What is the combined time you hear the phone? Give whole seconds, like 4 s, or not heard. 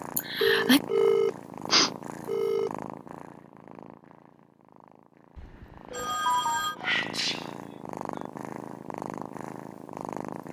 4 s.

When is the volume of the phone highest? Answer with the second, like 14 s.
1 s.